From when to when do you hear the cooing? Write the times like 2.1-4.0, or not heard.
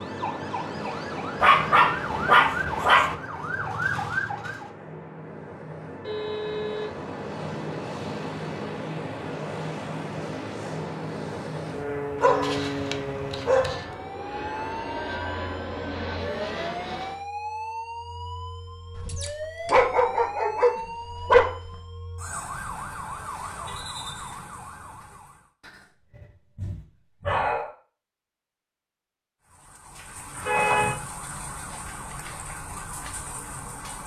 not heard.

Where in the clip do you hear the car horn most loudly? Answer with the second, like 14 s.
31 s.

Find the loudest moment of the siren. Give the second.
4 s.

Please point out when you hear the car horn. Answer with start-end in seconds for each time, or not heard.
6.0-7.0, 30.4-31.0.